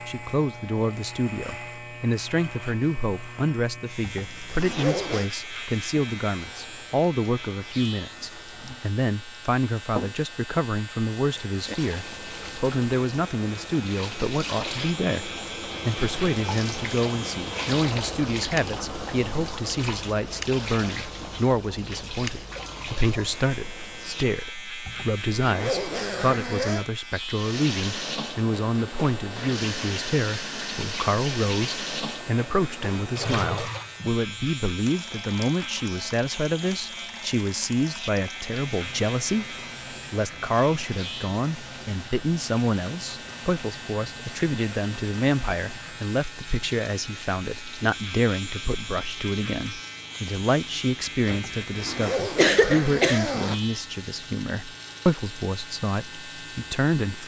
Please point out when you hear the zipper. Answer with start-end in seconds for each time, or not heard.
4.0-5.3, 24.9-26.9, 51.3-53.6.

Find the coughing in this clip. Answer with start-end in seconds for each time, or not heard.
51.2-53.2.